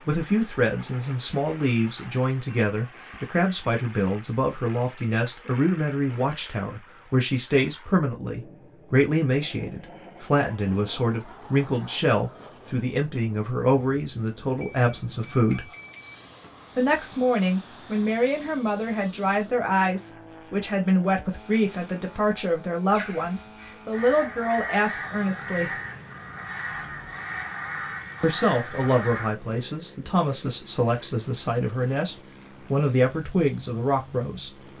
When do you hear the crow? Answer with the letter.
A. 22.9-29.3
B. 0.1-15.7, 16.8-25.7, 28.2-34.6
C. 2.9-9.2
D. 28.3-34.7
A.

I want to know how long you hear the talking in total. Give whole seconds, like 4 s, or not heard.
31 s.